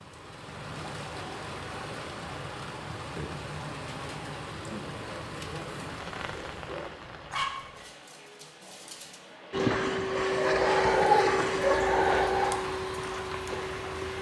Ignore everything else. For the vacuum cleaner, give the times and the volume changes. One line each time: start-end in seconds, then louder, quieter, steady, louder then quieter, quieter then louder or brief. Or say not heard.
9.5-14.1 quieter.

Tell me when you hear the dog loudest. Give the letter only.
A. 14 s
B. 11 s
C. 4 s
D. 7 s
B.